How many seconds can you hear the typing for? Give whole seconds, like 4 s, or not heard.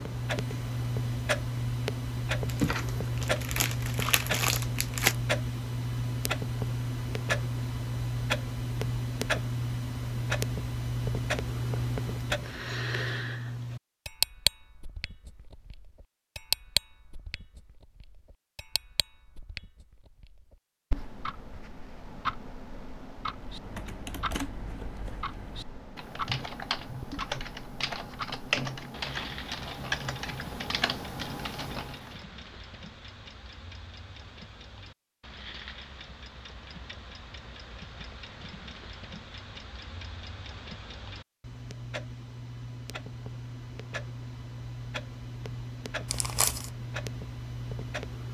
9 s.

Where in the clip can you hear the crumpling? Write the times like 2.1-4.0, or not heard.
2.5-5.2, 46.0-46.7.